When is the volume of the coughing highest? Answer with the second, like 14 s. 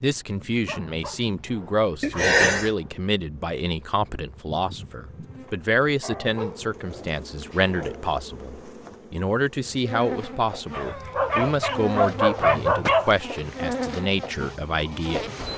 2 s.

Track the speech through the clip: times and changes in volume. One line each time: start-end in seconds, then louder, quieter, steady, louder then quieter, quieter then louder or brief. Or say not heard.
0.0-15.2 steady.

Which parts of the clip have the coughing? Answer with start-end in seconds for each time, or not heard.
2.0-2.7, 12.4-13.2.